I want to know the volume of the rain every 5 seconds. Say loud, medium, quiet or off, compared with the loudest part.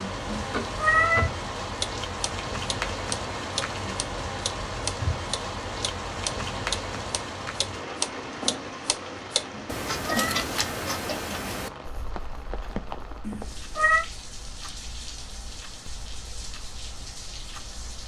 loud, loud, medium, medium.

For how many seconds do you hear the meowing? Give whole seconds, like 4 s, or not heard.
3 s.